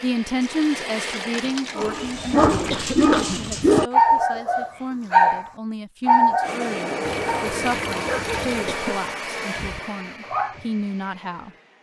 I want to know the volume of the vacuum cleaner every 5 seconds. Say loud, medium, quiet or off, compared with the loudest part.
medium, loud, quiet.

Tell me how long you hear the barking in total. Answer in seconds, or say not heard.
9 s.